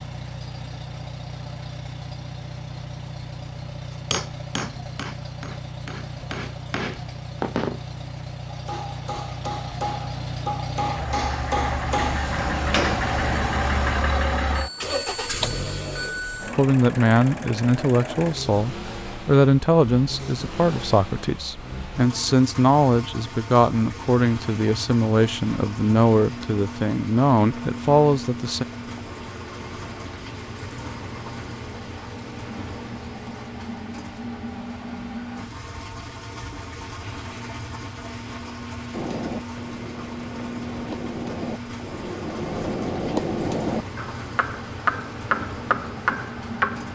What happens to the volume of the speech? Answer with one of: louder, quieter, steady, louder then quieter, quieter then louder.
steady.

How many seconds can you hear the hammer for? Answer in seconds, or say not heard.
17 s.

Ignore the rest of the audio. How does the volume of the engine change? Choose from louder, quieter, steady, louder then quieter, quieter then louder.
louder then quieter.